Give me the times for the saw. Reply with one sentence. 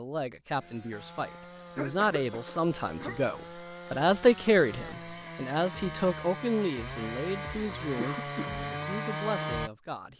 You can hear the saw from 0.6 to 9.7 s.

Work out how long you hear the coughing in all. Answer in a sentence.
The coughing can be heard for 2 seconds in total.